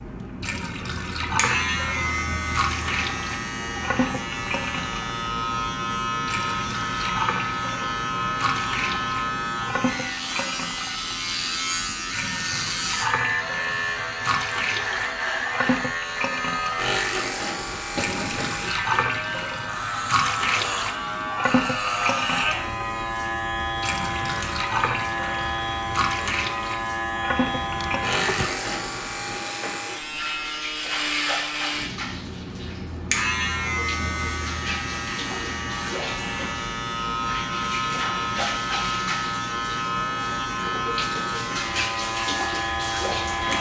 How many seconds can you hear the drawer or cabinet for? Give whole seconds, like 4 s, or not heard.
2 s.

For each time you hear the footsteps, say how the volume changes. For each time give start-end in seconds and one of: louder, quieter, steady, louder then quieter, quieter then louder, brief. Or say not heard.
not heard.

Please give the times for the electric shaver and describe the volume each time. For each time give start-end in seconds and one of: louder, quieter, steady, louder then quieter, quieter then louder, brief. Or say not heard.
0.0-43.5 steady.